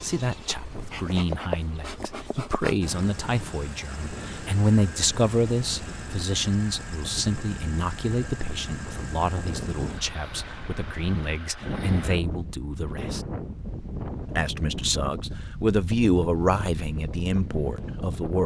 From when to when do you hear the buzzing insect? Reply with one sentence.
The buzzing insect can be heard from 0.0 to 2.8 s.